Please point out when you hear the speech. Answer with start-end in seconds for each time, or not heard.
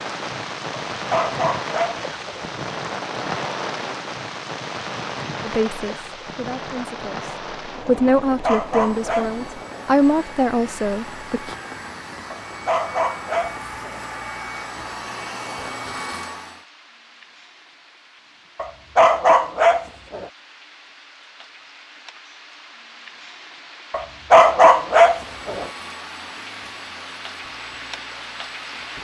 5.4-11.6.